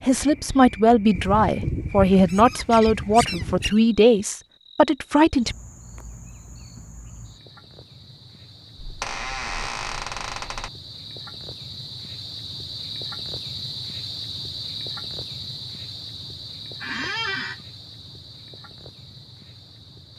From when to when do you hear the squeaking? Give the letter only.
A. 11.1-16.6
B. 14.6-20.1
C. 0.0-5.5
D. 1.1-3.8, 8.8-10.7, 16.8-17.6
D.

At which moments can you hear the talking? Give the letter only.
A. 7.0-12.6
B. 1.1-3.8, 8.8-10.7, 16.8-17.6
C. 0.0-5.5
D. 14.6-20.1
C.